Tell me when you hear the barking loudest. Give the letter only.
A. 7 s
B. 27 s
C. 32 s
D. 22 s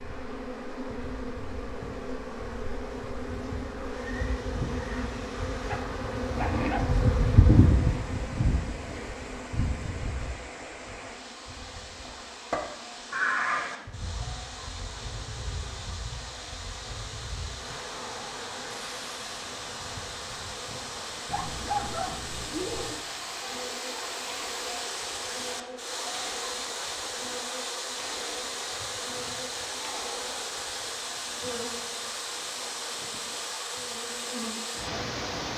D.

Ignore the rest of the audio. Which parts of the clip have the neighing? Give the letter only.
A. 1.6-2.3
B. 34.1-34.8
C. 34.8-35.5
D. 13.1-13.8
D.